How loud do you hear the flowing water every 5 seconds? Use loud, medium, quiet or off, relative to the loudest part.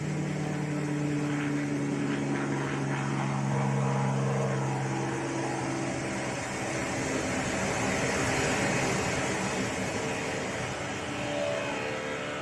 medium, loud, medium.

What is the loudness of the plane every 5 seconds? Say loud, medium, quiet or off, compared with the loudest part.
loud, medium, medium.